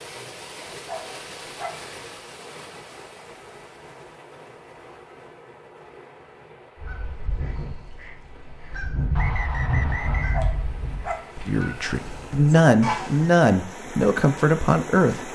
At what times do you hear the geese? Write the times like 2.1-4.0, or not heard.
6.8-13.3.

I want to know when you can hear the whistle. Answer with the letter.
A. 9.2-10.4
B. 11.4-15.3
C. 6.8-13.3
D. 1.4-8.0
A.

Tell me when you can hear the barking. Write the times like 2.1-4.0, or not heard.
0.7-1.9, 10.2-11.3.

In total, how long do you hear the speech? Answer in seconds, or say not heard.
4 s.